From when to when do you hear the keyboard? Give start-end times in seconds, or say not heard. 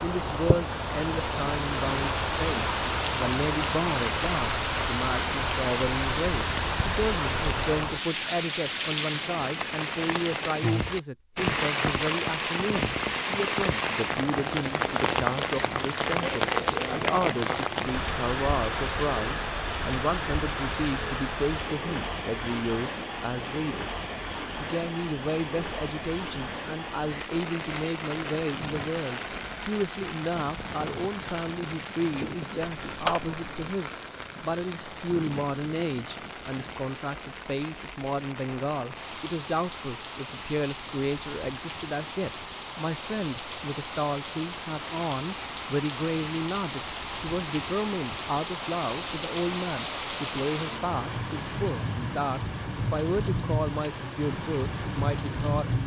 32.6-33.7.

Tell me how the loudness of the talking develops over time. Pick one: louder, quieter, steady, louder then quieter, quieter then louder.
steady.